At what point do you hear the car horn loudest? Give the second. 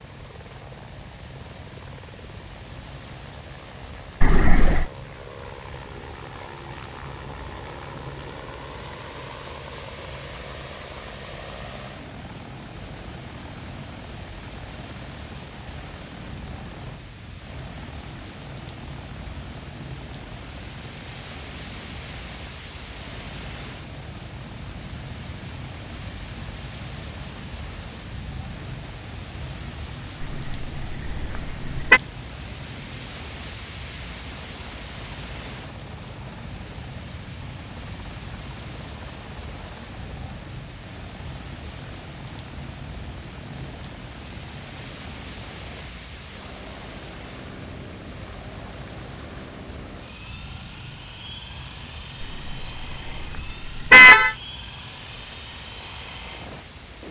54 s.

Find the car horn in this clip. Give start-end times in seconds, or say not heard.
4.2-4.9, 30.2-32.0, 52.2-54.4.